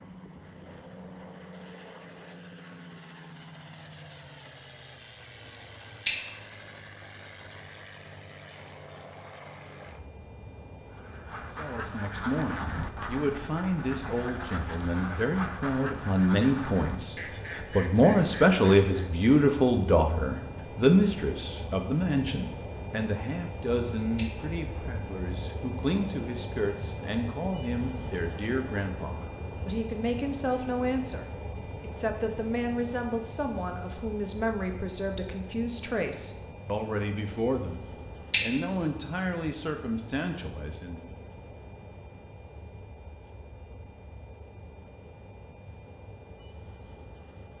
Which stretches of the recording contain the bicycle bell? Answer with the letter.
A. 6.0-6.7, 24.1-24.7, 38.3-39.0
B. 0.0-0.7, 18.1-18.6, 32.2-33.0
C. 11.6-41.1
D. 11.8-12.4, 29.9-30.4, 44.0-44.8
A.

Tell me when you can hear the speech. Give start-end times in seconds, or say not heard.
11.6-41.1.